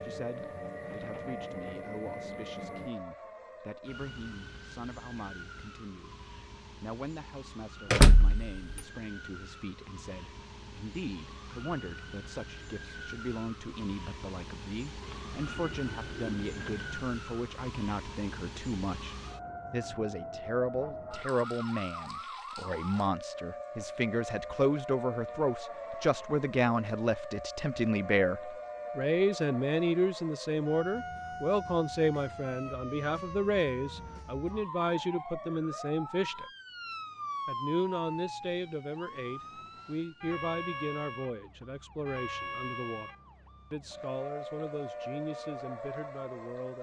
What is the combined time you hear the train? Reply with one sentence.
You can hear the train for 3 seconds altogether.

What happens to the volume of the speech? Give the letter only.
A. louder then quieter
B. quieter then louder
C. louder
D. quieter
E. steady
A.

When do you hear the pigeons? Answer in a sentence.
The pigeons can be heard from 15.0 to 17.1 s.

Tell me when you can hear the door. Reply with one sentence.
The door can be heard from 7.9 to 8.8 s.